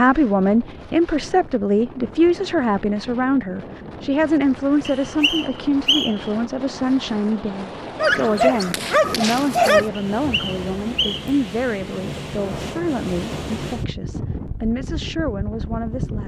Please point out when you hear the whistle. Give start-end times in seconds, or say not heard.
4.8-6.3, 10.1-11.3.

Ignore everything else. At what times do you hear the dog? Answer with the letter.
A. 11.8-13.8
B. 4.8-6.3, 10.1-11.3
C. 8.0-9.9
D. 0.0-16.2
C.